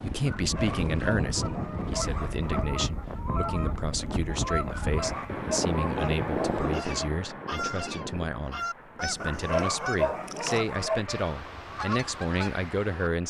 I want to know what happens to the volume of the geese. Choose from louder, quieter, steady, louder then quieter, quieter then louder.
steady.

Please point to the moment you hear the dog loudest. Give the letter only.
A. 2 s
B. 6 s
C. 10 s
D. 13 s
C.